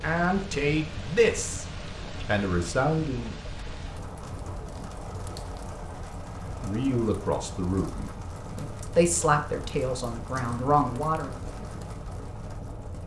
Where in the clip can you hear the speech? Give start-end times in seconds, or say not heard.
0.0-1.6, 2.2-3.4, 6.5-11.4.